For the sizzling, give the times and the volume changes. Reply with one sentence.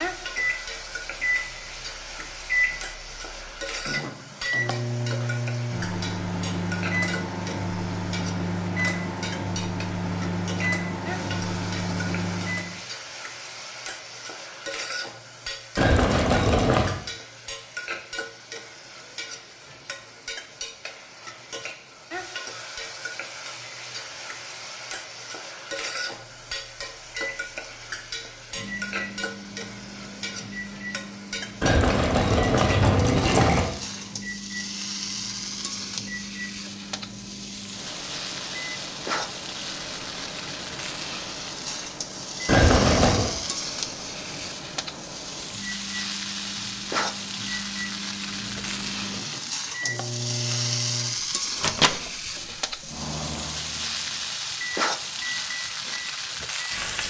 The sizzling can be heard from 0.0 to 57.0 s, getting louder.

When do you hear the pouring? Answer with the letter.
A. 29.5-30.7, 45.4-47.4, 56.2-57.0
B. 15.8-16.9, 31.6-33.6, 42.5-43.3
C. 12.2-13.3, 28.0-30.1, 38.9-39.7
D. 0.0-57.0
B.